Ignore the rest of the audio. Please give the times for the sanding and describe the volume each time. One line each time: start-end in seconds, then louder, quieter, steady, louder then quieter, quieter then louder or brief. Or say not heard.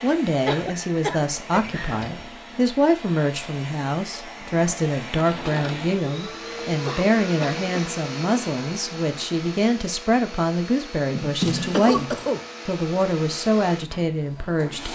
not heard.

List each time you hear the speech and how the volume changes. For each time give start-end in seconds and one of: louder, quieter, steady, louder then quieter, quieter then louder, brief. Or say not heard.
0.0-14.9 steady.